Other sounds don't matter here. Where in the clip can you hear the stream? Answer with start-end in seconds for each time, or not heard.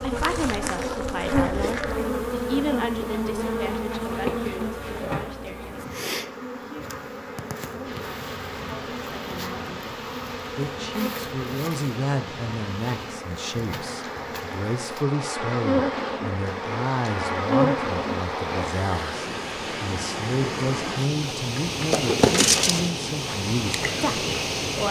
7.8-24.8.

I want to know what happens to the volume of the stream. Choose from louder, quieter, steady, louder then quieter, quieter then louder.
louder.